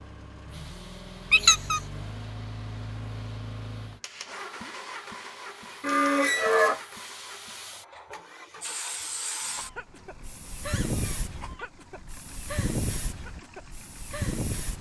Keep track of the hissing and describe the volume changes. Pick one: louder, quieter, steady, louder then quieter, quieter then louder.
louder.